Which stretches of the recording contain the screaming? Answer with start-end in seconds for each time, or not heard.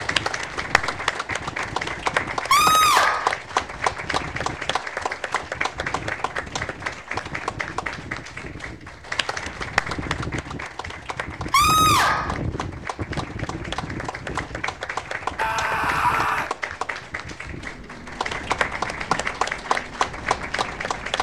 2.5-3.4, 11.5-12.4, 15.3-16.5.